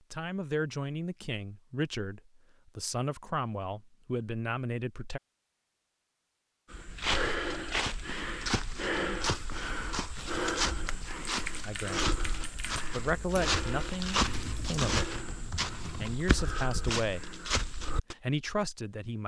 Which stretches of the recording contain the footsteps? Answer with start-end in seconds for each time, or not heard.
6.7-18.1.